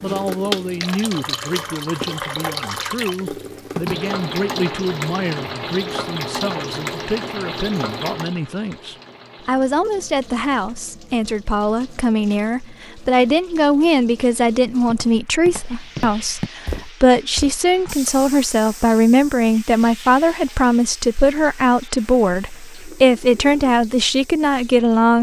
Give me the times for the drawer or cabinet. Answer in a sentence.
The drawer or cabinet can't be heard in this clip.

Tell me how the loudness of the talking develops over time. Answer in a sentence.
The volume of the talking goes up.